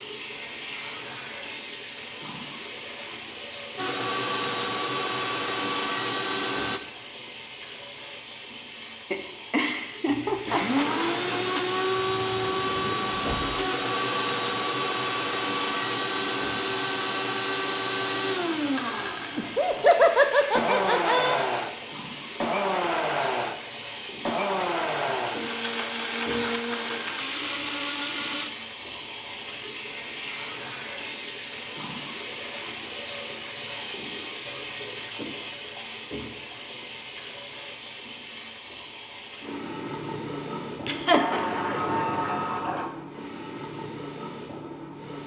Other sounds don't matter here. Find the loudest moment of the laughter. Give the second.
20 s.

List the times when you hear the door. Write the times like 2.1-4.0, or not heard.
12.2-13.7, 41.1-42.9.